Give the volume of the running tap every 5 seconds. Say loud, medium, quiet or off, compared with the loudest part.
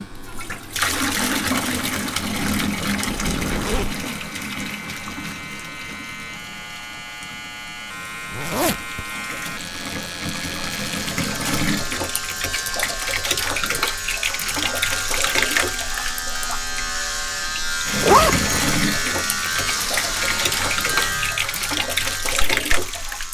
loud, quiet, loud, loud, loud.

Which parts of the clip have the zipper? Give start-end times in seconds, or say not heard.
3.1-4.0, 8.3-9.1, 18.0-18.8.